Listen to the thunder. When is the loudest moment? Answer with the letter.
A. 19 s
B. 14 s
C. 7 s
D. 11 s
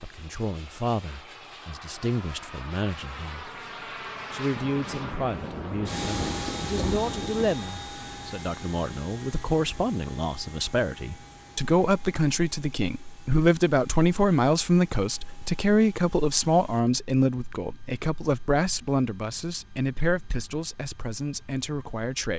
C.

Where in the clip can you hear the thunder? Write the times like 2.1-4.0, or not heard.
4.5-7.5.